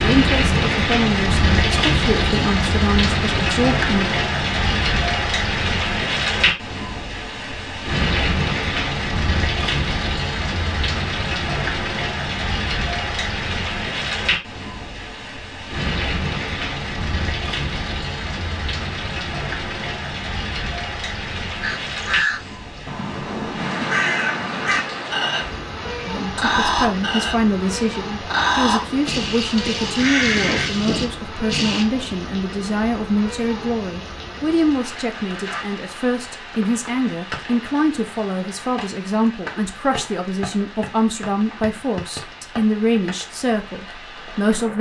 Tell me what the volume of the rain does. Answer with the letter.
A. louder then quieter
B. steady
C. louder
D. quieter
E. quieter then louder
D.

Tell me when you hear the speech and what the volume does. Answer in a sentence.
The speech can be heard from 0.0 to 4.0 s, at a steady volume; and from 26.1 to 44.7 s, at a steady volume.